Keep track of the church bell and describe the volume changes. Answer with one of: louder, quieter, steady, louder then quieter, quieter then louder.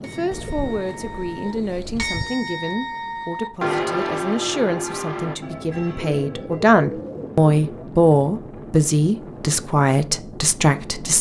louder then quieter.